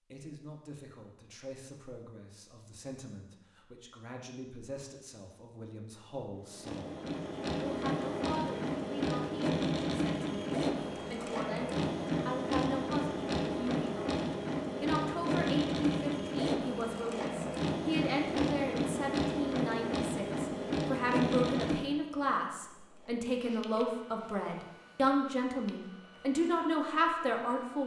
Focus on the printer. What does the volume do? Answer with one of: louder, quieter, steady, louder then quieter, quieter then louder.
quieter.